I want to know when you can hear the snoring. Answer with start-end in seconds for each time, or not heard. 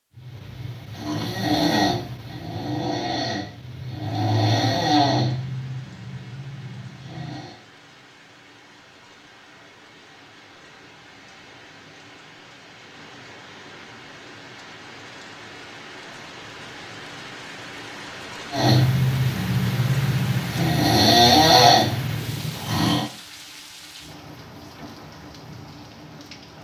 0.1-7.5, 18.5-23.1.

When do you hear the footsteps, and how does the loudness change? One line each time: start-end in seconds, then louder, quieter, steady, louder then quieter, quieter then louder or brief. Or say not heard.
not heard.